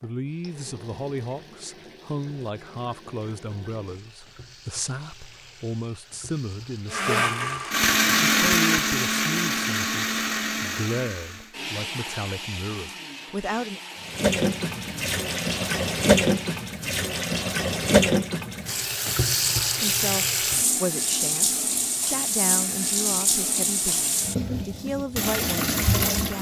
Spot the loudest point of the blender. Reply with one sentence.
The loudest moment of the blender is at 8 seconds.